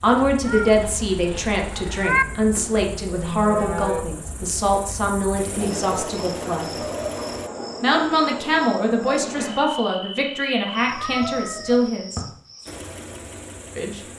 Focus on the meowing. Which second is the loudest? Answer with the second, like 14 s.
2 s.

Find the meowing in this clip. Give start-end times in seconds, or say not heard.
0.5-2.2, 10.8-11.9.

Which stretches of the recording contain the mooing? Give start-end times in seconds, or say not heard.
2.5-4.0.